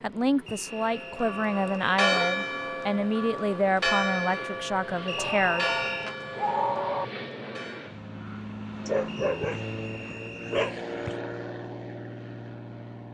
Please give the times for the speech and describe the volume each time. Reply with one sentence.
You can hear the speech from 0.0 to 6.1 s, at a steady volume.